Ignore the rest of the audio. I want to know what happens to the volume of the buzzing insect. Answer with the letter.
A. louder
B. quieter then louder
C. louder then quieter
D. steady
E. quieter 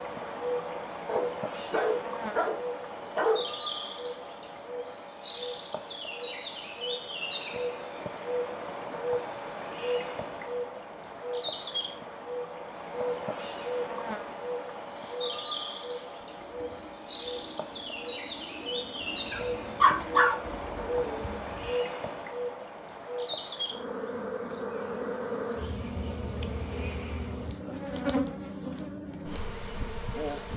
D.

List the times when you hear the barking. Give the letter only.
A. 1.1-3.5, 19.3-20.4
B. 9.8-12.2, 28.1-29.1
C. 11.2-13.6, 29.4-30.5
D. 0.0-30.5
A.